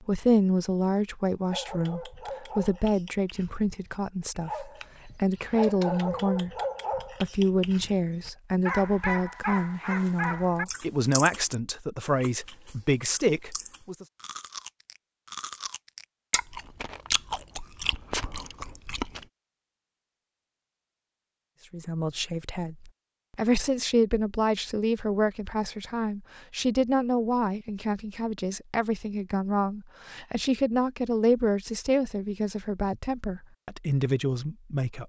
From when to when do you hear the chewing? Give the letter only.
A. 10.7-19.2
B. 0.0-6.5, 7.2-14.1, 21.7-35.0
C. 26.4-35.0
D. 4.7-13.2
A.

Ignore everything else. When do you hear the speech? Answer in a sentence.
You can hear the speech from 0.0 to 6.5 s, from 7.2 to 14.1 s and from 21.7 to 35.0 s.